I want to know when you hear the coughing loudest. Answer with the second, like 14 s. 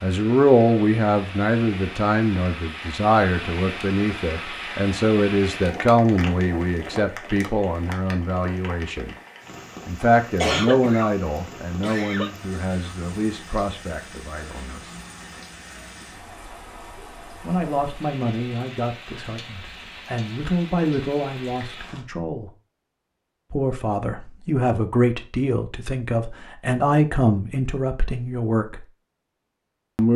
11 s.